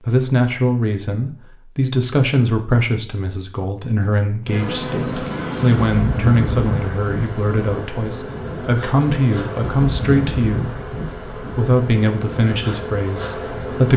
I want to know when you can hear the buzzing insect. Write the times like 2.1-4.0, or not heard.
4.5-13.9.